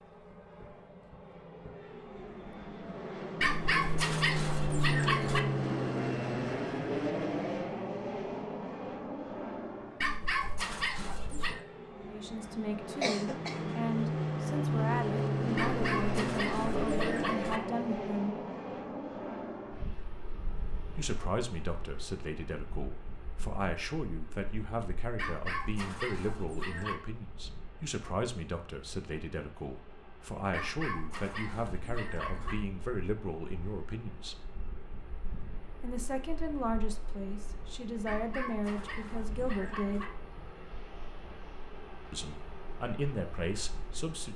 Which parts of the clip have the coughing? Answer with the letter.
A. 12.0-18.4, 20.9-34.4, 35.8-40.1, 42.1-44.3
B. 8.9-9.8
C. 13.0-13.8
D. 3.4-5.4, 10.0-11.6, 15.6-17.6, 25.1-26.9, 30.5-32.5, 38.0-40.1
C.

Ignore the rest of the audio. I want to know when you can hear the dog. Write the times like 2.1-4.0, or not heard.
3.4-5.4, 10.0-11.6, 15.6-17.6, 25.1-26.9, 30.5-32.5, 38.0-40.1.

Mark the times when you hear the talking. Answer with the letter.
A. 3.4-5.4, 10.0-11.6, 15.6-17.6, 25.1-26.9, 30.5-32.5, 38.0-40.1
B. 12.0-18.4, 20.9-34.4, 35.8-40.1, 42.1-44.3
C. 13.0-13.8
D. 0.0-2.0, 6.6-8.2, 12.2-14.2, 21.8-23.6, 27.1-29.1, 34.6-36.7
B.